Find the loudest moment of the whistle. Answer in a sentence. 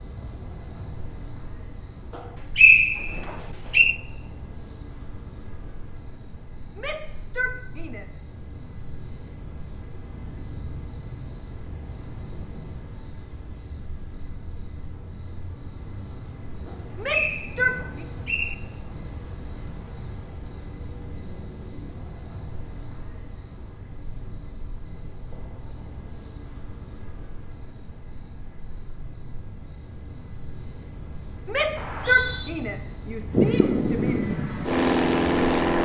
The volume of the whistle peaks at 3 seconds.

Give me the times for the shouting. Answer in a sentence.
You can hear the shouting from 6.8 to 8.2 s, from 16.9 to 18.1 s and from 31.4 to 34.2 s.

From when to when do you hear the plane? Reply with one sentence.
The plane can be heard from 33.3 to 35.8 s.